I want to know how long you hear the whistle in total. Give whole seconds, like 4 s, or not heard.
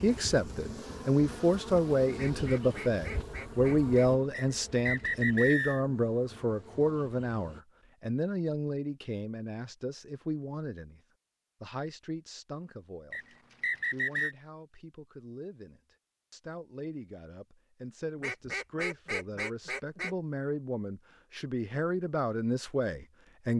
3 s.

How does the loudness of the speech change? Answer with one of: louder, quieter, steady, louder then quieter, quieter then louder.
quieter then louder.